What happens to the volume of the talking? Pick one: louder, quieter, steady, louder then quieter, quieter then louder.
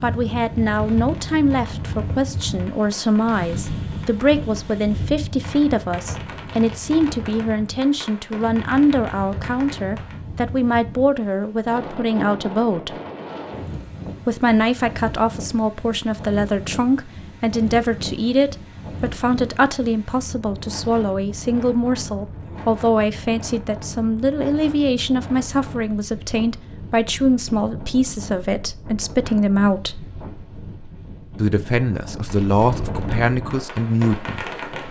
steady.